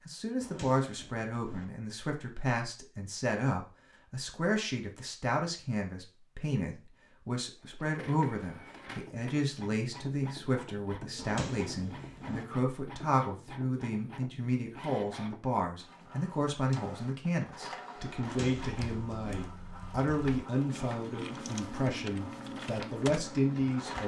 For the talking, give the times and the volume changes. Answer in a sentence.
The talking can be heard from 0.1 to 24.0 s, at a steady volume.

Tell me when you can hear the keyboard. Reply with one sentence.
The keyboard can be heard from 18.6 to 24.0 s.